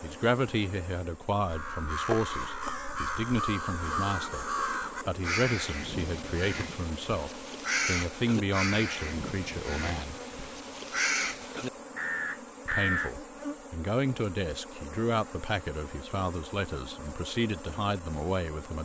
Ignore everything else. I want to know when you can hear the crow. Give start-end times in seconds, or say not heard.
1.4-13.2.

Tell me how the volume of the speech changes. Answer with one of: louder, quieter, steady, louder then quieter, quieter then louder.
steady.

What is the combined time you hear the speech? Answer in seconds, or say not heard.
16 s.